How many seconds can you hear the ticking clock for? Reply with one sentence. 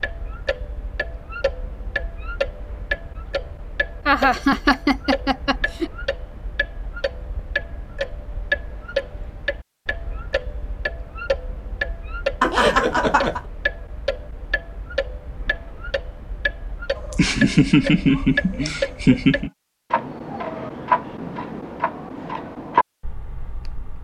You can hear the ticking clock for 24 seconds altogether.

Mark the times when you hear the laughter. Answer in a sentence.
The laughter can be heard from 4.0 to 5.9 s, from 12.4 to 13.4 s and from 16.9 to 19.5 s.